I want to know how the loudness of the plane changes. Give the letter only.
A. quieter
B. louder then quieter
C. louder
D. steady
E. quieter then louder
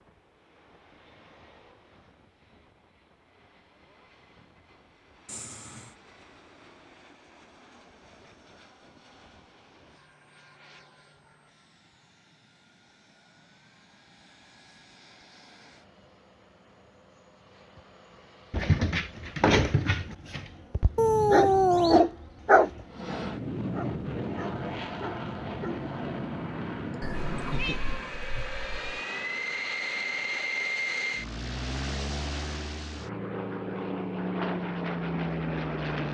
C.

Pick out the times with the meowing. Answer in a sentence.
The meowing can be heard from 5.2 to 6.0 s, from 20.9 to 22.0 s and from 27.0 to 29.0 s.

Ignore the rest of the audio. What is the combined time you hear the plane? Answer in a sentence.
The plane can be heard for 36 seconds in total.